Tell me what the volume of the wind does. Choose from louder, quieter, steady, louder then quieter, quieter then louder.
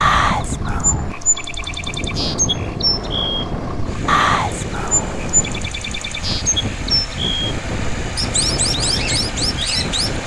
steady.